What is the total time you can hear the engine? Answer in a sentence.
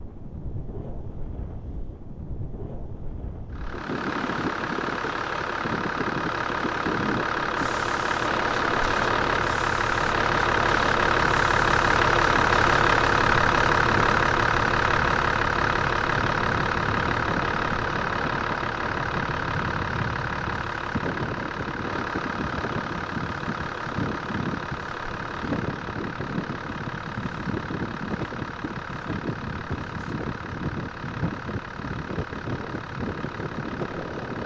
You can hear the engine for 31 seconds altogether.